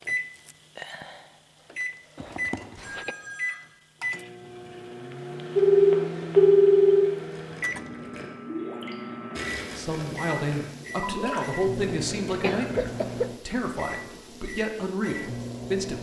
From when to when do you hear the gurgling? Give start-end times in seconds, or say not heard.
7.2-12.5.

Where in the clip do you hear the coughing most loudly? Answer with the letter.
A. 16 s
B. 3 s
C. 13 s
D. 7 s
C.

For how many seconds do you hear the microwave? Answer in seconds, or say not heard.
16 s.